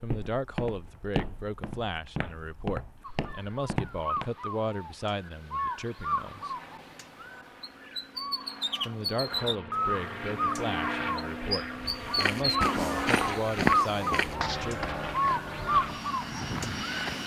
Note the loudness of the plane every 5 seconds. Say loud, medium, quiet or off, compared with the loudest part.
off, medium, loud, loud.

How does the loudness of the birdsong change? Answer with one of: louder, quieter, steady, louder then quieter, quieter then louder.
louder.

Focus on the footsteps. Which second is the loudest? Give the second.
14 s.